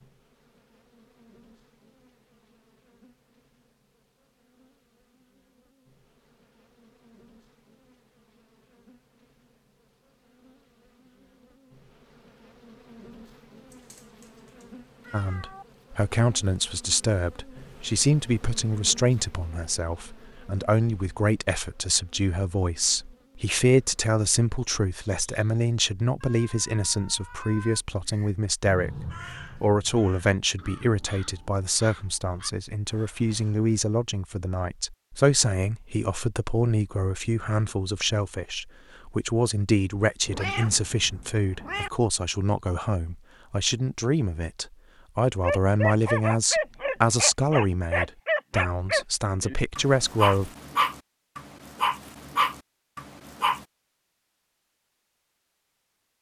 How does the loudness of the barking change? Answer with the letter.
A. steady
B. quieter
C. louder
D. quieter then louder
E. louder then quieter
A.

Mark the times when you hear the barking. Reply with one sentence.
The barking can be heard from 45.4 to 53.6 s.